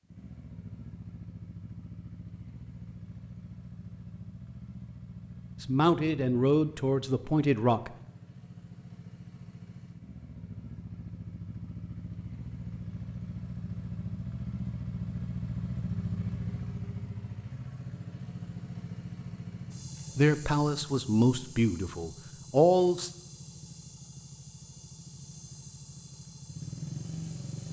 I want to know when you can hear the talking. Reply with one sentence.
The talking can be heard from 5.6 to 7.9 s and from 20.1 to 23.1 s.